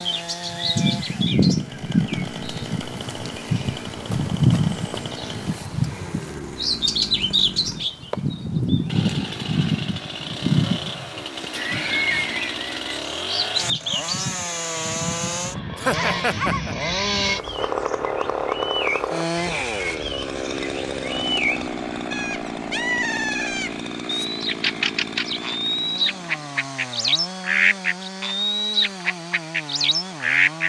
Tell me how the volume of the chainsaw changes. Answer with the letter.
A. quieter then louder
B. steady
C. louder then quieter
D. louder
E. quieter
C.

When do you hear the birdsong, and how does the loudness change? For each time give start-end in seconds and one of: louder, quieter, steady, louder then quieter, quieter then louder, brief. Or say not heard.
0.0-30.6 quieter then louder.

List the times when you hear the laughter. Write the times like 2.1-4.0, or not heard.
11.5-12.8, 15.8-16.8.